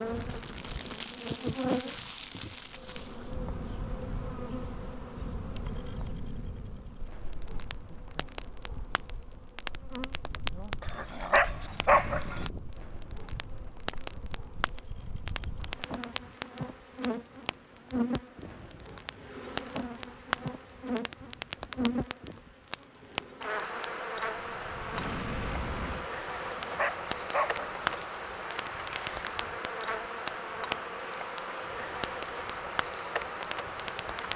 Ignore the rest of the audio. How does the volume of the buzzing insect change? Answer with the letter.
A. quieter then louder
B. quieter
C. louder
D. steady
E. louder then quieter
A.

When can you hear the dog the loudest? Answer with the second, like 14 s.
12 s.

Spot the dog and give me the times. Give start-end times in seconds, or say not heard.
10.8-12.5, 26.4-28.1.